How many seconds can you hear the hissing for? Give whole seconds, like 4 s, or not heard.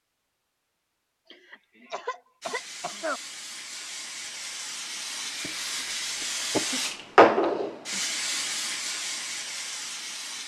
8 s.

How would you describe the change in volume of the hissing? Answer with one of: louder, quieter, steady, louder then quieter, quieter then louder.
louder then quieter.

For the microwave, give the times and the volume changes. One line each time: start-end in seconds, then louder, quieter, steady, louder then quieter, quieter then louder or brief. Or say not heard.
not heard.